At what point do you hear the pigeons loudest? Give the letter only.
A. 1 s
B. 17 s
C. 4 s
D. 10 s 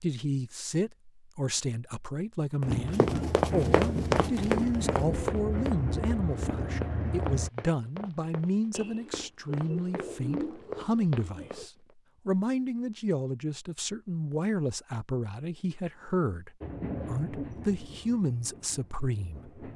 D.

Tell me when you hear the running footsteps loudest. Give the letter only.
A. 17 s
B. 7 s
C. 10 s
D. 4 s
D.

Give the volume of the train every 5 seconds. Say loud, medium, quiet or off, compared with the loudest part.
loud, loud, off, medium.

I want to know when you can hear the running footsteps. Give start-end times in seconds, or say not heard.
2.6-11.9.